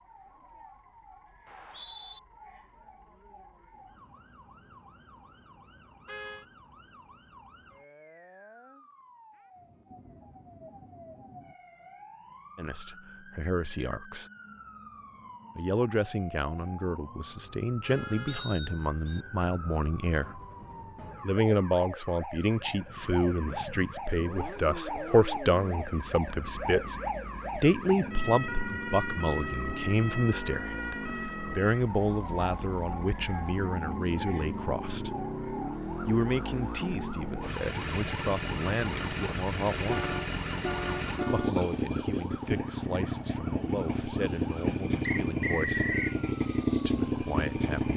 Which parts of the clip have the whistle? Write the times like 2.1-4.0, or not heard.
1.4-2.2, 18.2-19.2, 45.0-46.1.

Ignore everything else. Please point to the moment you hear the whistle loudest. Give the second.
46 s.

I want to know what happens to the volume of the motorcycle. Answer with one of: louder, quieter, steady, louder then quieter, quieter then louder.
louder.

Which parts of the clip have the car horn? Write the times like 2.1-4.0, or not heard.
6.0-6.5, 17.8-18.4, 39.9-41.6.